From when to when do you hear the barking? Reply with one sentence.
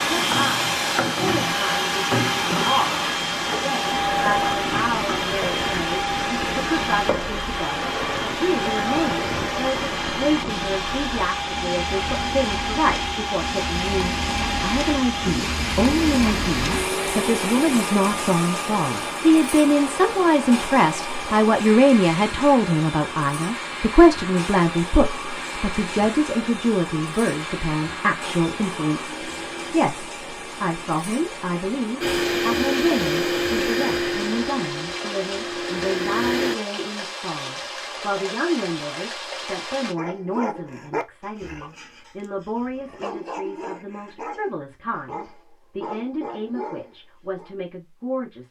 The barking can be heard from 40.0 to 47.5 s.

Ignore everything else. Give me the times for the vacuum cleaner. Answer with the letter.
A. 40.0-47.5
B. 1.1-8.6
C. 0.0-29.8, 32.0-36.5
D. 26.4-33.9
C.